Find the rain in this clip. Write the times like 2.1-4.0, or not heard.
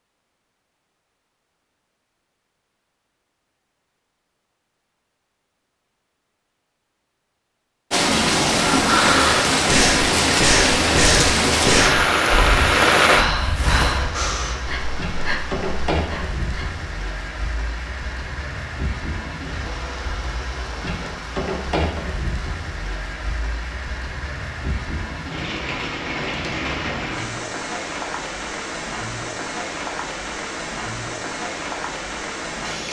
7.9-32.8.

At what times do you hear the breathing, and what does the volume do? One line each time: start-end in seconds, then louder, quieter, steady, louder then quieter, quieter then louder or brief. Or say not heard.
8.7-16.8 quieter.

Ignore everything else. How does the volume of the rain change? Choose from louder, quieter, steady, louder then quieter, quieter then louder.
quieter.